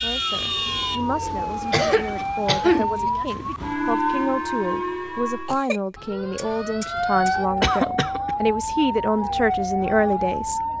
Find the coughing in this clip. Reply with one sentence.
The coughing can be heard from 1.7 to 3.1 s and from 7.6 to 8.3 s.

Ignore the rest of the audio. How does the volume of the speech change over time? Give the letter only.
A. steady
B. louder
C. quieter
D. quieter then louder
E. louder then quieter
B.